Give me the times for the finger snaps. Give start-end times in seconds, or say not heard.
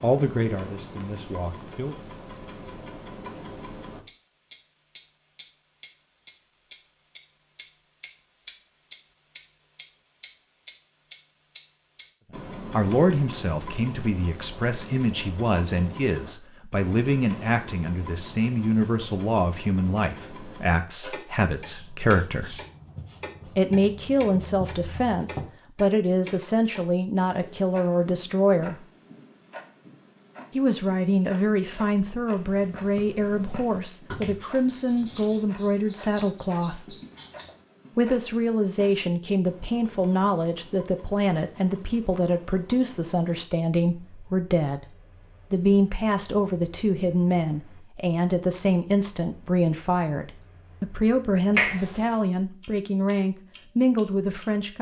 51.5-52.1.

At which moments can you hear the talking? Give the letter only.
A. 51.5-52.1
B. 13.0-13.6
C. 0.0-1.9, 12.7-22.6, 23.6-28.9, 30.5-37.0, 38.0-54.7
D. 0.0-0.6
C.